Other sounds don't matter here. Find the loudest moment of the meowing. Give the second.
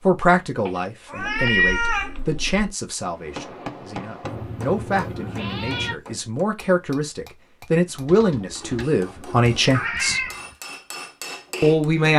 2 s.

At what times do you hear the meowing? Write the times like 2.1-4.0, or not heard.
0.7-2.1, 4.2-6.0, 9.2-10.6.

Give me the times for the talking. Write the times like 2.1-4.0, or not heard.
0.1-10.2, 11.6-12.1.